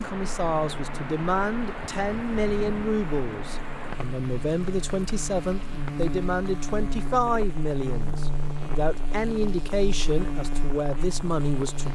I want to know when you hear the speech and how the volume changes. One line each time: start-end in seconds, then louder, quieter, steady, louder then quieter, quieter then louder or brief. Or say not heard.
0.0-11.9 steady.